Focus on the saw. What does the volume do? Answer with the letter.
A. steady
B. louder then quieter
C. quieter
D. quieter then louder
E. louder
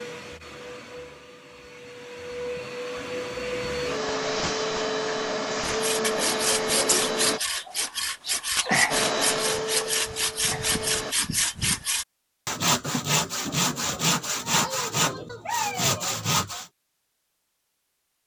A.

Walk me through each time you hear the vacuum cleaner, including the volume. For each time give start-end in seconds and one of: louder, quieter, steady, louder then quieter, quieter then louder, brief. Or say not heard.
0.0-7.4 louder
8.9-11.2 brief.